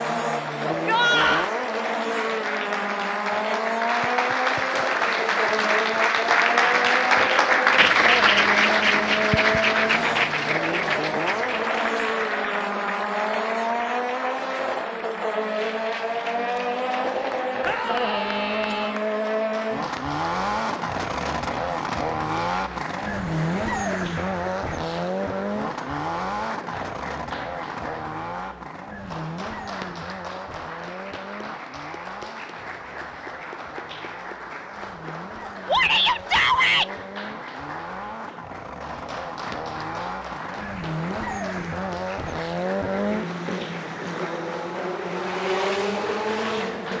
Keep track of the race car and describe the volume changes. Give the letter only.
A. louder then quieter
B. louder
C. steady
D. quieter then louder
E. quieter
D.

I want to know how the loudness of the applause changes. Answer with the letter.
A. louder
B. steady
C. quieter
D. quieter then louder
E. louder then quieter
C.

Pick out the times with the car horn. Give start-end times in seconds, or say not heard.
not heard.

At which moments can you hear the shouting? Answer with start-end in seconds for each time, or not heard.
0.7-1.5, 17.6-19.0, 35.6-36.9.